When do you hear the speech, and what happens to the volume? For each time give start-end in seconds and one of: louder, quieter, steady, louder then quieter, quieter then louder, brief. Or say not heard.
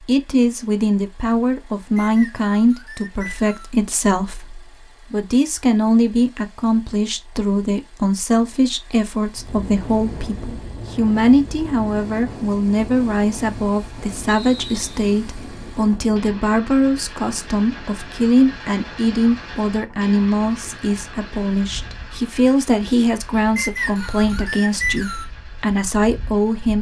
0.0-26.7 steady.